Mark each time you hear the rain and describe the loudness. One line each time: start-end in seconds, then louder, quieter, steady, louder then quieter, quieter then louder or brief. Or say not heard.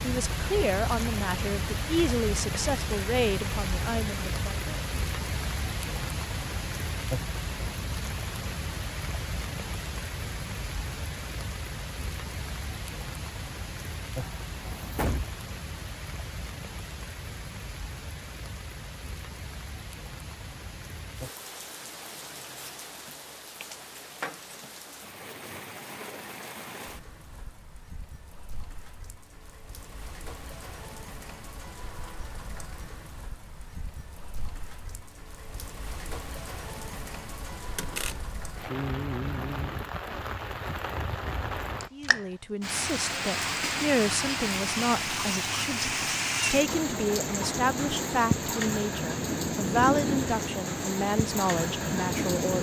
0.0-52.5 quieter then louder.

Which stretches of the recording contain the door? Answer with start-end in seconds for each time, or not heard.
14.2-15.3, 37.8-38.4.